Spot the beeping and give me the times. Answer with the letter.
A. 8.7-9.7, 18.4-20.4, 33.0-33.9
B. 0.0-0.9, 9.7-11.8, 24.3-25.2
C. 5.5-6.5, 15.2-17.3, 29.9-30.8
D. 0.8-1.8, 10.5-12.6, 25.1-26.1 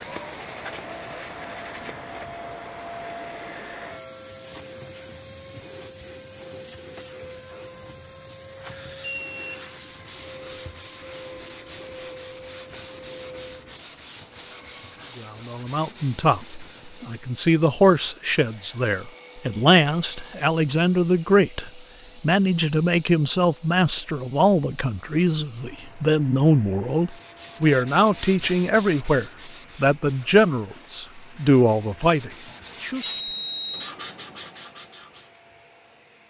A.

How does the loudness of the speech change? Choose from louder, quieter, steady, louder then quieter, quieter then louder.
steady.